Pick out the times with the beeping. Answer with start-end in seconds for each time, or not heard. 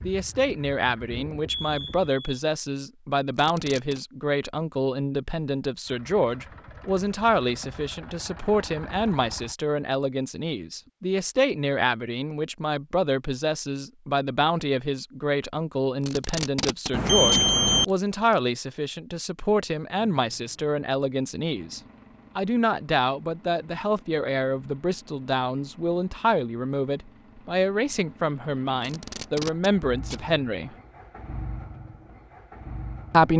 1.4-2.4, 16.9-17.9.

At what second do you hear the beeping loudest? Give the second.
17 s.